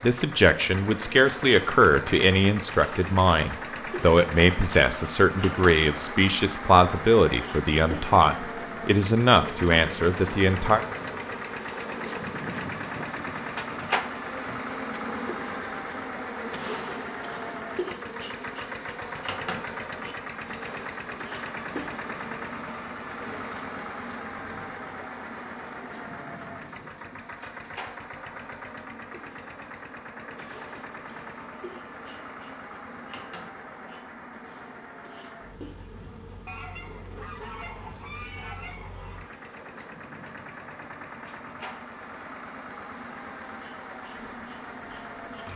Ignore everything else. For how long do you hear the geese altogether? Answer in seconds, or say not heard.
3 s.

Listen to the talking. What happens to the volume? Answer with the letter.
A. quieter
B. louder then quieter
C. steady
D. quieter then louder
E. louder
C.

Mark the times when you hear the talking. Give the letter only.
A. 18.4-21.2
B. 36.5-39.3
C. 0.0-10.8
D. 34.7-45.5
C.